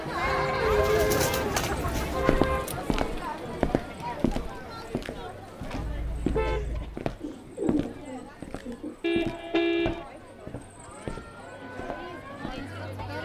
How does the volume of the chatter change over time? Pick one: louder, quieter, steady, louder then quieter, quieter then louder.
quieter then louder.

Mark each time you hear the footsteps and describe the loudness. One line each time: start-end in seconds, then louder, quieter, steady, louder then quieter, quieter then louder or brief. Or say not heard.
2.1-12.7 quieter.